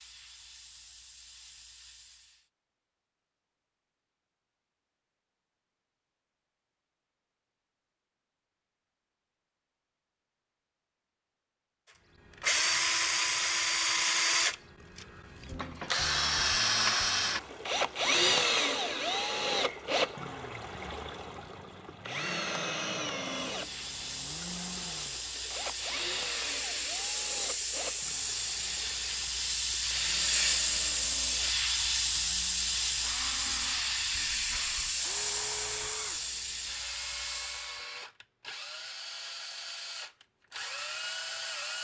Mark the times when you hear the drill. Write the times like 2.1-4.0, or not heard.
12.4-41.8.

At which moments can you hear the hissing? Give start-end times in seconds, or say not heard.
0.0-2.5, 23.4-37.9.